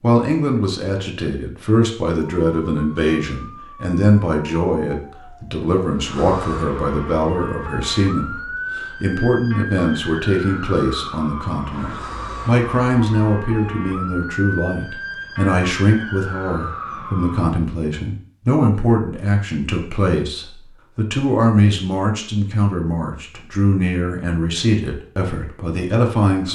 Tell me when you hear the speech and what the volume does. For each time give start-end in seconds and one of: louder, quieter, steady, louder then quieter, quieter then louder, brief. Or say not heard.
0.0-26.5 steady.